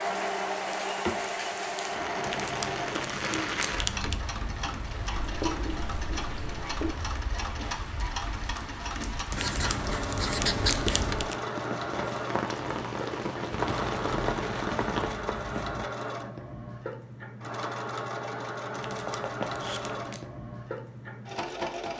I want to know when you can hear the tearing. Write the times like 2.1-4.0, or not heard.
2.2-4.2, 9.3-11.3, 18.8-20.2.